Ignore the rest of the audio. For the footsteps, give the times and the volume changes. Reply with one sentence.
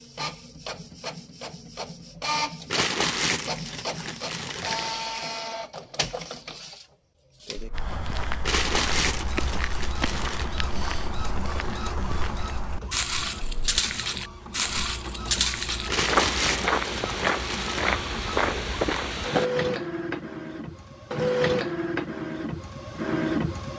The footsteps can be heard from 7.7 to 19.5 s, getting louder.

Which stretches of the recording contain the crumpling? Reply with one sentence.
The crumpling can be heard from 2.7 to 5.0 s, from 8.4 to 10.5 s and from 15.8 to 17.9 s.